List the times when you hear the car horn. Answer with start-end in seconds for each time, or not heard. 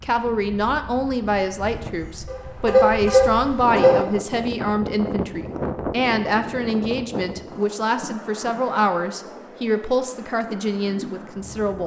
2.2-4.0.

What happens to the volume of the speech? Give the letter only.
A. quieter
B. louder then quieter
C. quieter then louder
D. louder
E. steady
E.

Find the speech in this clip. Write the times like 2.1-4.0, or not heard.
0.0-11.8.